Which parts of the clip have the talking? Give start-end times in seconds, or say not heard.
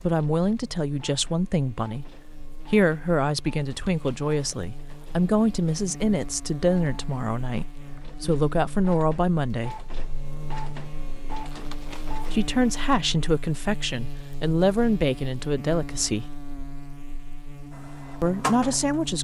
0.0-9.8, 12.3-16.4, 18.2-19.1.